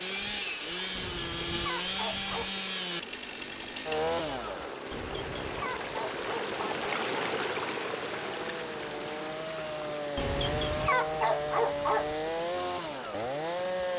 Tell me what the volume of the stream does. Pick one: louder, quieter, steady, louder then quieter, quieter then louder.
louder then quieter.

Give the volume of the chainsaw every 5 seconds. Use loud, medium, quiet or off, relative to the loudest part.
loud, medium, loud.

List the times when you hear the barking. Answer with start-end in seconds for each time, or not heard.
0.9-2.5, 4.9-6.8, 10.2-12.2.